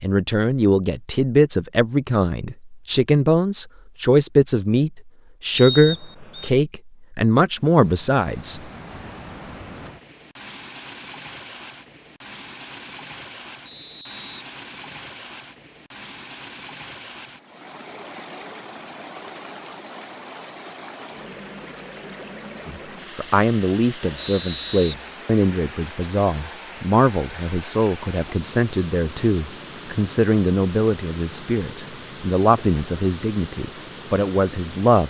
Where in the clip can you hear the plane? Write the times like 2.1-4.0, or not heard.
not heard.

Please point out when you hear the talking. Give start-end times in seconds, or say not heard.
0.0-8.6, 22.6-35.0.